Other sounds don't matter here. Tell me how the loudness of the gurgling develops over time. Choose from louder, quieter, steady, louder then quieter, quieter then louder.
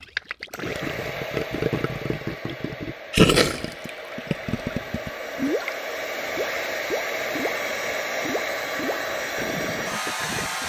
louder then quieter.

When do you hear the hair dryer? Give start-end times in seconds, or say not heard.
0.0-10.6.